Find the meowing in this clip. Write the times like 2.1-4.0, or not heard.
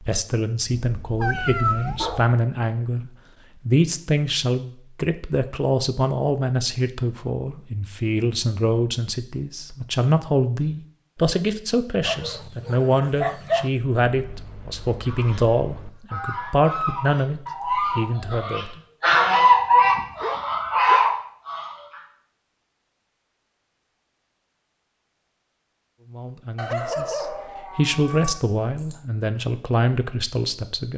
0.8-2.3, 14.1-15.9, 27.1-28.4.